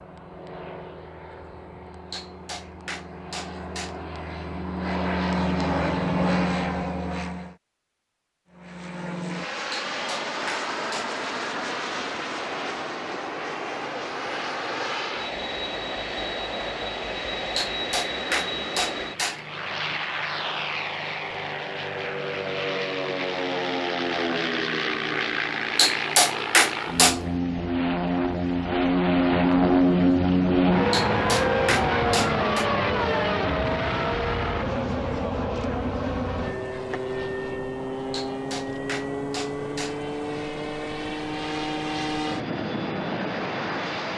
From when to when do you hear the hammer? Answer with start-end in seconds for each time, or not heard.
2.1-4.0, 9.7-11.2, 17.6-19.4, 25.8-27.2, 30.9-32.6, 38.1-40.0.